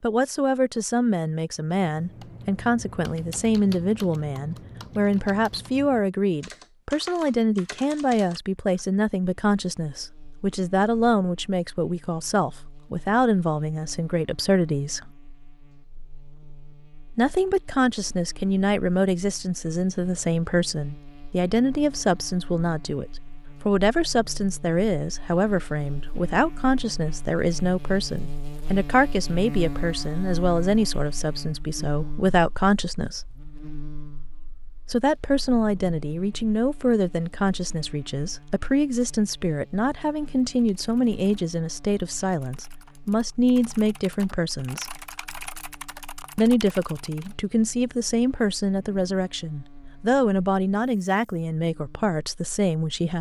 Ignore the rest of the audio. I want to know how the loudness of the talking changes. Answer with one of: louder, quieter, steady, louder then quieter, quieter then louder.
steady.